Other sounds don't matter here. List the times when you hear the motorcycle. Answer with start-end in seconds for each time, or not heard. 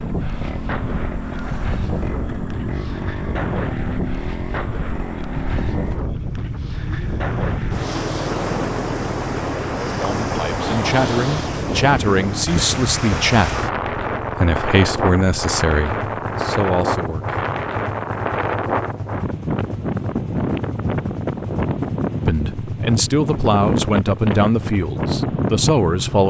0.0-26.2.